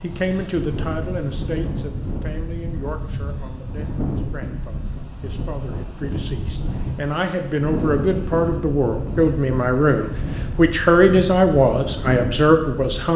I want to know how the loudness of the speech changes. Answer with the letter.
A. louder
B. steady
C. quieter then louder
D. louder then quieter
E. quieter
C.